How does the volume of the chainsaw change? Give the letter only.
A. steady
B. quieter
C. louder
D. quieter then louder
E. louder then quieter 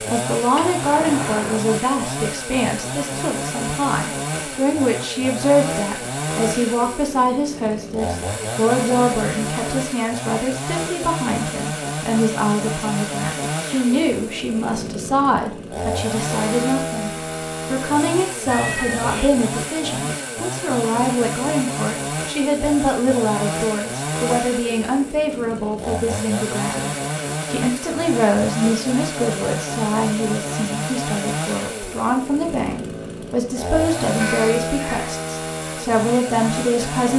A.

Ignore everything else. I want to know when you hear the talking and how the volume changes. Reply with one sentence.
You can hear the talking from 0.1 to 37.1 s, at a steady volume.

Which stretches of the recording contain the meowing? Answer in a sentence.
The meowing can be heard from 0.6 to 1.7 s, from 18.4 to 19.4 s and from 34.2 to 35.1 s.